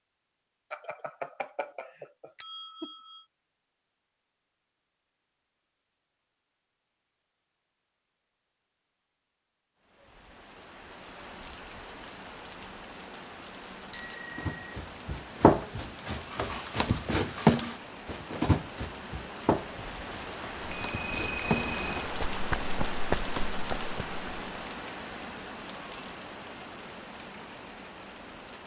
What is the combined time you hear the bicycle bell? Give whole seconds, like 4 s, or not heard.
5 s.